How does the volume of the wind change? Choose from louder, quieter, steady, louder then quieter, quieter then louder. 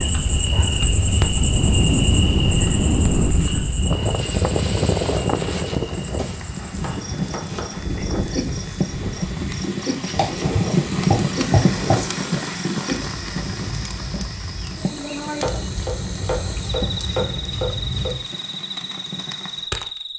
quieter.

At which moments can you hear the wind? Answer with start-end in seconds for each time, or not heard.
0.0-12.3.